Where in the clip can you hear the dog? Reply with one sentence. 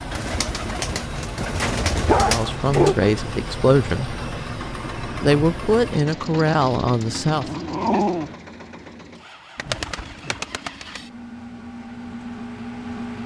The dog can be heard from 1.9 to 3.1 s and from 7.3 to 8.3 s.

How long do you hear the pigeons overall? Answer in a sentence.
You can hear the pigeons for 4 seconds altogether.